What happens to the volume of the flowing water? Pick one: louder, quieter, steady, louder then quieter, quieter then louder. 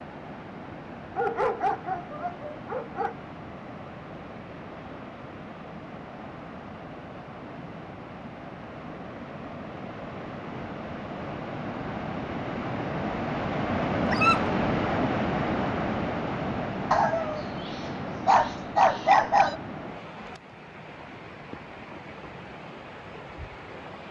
louder then quieter.